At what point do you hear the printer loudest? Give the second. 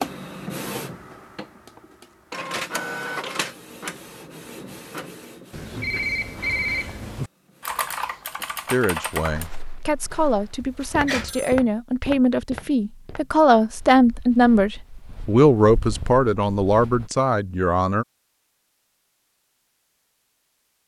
3 s.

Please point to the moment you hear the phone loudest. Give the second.
7 s.